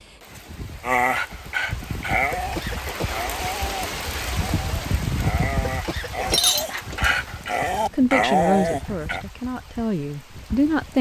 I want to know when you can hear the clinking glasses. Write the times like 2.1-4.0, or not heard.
6.2-7.9.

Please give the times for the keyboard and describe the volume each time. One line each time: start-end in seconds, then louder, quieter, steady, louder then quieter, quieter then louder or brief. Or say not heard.
not heard.